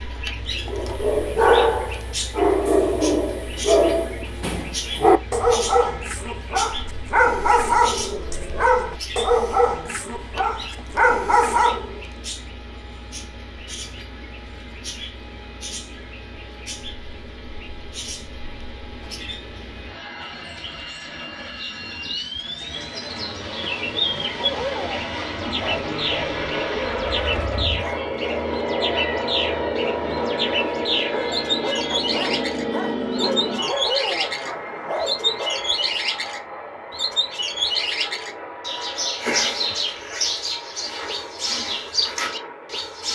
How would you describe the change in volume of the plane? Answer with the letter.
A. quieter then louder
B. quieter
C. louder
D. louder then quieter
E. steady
D.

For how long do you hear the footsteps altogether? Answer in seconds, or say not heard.
not heard.